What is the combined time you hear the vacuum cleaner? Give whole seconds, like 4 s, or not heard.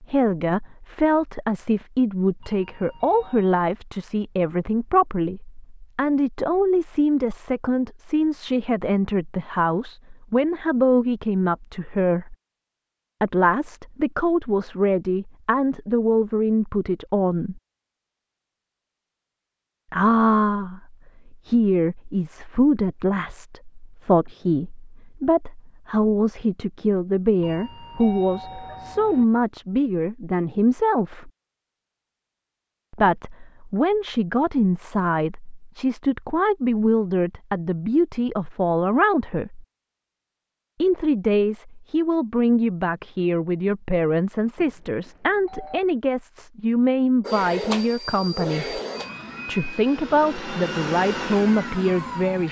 5 s.